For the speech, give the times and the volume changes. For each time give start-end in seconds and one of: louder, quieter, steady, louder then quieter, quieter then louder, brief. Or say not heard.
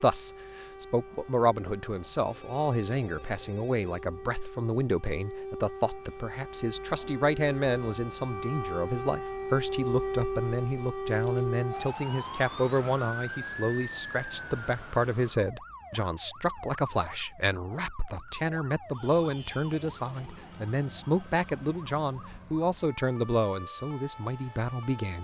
0.0-25.1 steady.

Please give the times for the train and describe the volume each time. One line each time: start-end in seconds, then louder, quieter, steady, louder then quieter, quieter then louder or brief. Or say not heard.
not heard.